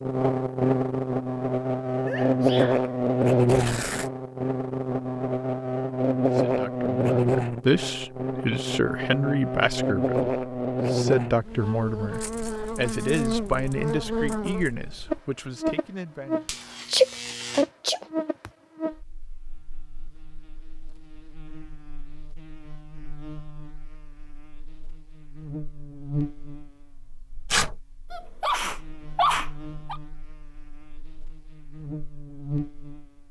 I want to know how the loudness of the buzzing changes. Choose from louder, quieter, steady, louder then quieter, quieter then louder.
quieter.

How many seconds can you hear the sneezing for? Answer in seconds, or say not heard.
4 s.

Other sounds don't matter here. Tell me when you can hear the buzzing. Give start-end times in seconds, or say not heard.
0.0-33.2.